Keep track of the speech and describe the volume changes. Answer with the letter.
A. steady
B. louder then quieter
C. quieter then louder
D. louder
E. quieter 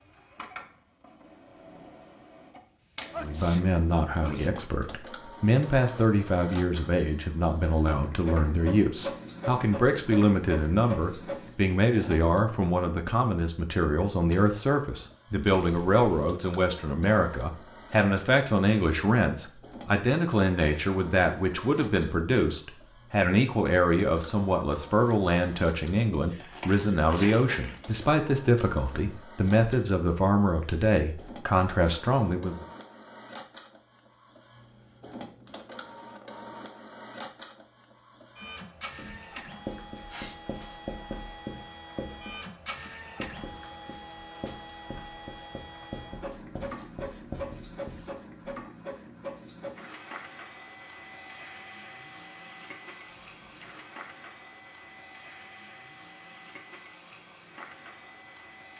A.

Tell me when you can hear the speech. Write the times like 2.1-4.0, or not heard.
3.1-32.6.